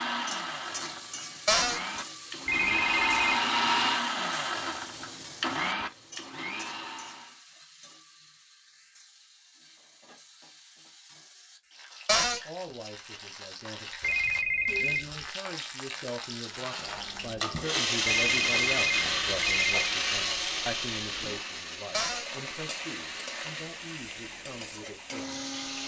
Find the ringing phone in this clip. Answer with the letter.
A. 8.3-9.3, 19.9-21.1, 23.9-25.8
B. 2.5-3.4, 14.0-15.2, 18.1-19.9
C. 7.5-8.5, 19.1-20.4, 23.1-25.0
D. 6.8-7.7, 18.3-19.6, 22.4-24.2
B.